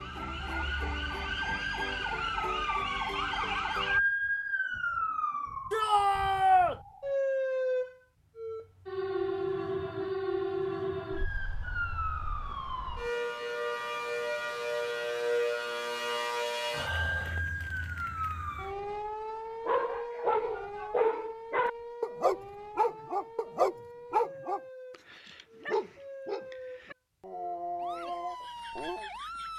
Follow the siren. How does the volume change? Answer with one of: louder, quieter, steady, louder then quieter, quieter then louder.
quieter.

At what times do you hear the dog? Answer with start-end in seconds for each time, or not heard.
19.6-29.1.